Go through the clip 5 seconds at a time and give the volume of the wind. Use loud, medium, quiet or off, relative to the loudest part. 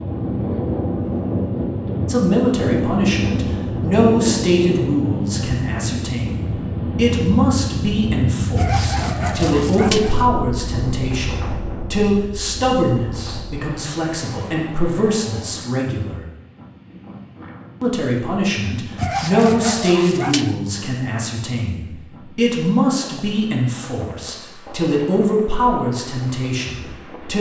loud, loud, medium, quiet, quiet, quiet.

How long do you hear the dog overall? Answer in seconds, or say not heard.
3 s.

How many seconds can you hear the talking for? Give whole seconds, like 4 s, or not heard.
24 s.